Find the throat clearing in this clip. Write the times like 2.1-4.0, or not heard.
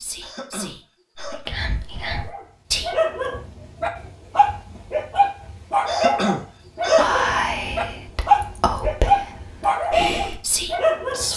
0.2-1.4, 5.8-7.2.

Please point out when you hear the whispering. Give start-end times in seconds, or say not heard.
0.0-3.0, 7.0-11.3.